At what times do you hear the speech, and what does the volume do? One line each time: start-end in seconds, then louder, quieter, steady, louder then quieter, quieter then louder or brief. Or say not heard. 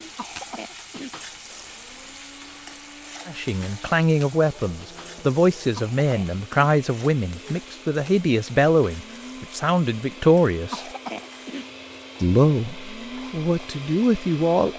3.2-10.8 steady
12.2-14.7 brief.